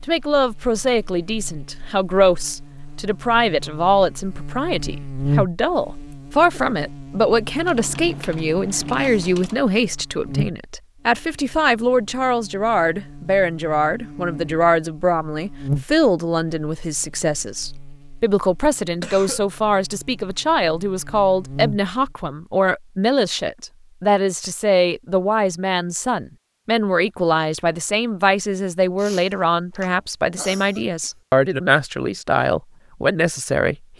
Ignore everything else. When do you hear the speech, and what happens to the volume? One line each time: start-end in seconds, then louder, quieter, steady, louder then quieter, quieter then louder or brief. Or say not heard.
0.1-33.9 steady.